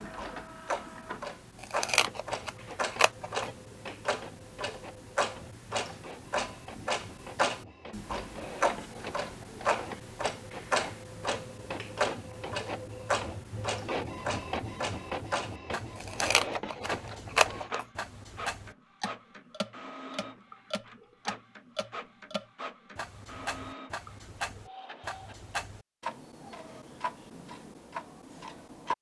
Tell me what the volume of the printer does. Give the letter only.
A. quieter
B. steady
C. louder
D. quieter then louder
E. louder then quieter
E.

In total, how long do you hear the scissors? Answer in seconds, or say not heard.
4 s.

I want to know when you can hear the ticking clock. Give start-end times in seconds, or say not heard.
0.0-28.9.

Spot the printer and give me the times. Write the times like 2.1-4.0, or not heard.
0.0-25.5.